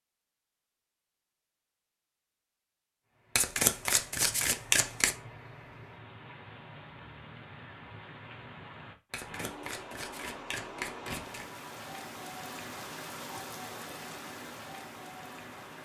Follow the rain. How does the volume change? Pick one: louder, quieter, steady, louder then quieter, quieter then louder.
louder.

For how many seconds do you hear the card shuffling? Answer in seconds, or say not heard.
4 s.